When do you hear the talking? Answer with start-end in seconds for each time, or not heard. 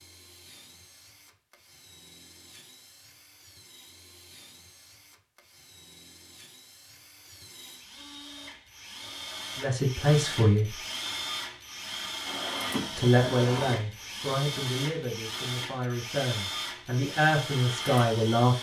9.6-10.8, 12.9-18.5.